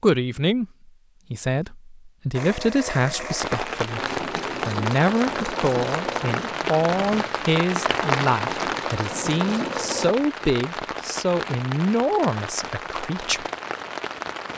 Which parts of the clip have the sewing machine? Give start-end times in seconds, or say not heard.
2.3-10.2.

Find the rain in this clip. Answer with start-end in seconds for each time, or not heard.
3.4-14.5.